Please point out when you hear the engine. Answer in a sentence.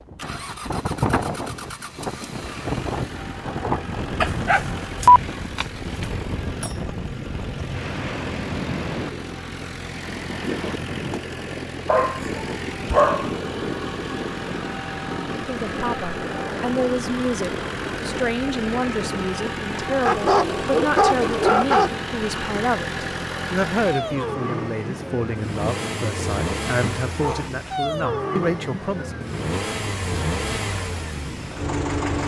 You can hear the engine from 0.0 to 32.2 s.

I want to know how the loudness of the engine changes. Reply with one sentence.
The volume of the engine goes up.